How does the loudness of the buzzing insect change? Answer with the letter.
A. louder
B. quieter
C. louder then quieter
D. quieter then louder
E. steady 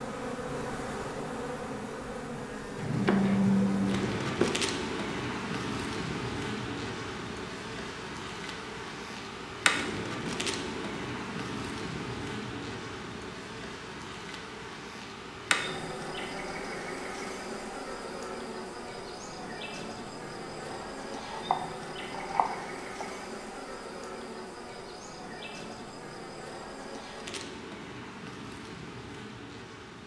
B.